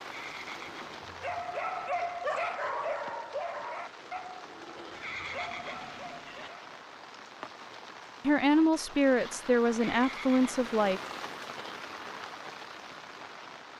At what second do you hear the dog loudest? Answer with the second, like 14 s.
2 s.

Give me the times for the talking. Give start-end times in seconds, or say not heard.
8.2-11.0.